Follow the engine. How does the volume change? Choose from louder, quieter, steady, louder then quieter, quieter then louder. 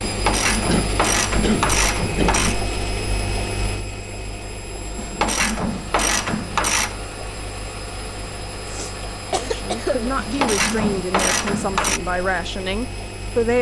quieter.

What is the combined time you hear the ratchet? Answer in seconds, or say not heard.
6 s.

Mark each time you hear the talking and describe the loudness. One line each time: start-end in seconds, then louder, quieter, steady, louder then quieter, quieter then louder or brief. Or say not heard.
9.3-13.5 steady.